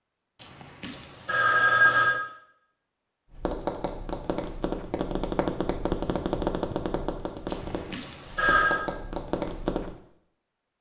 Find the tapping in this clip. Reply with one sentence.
You can hear the tapping from 3.3 to 9.9 s.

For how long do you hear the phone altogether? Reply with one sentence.
You can hear the phone for 3 seconds altogether.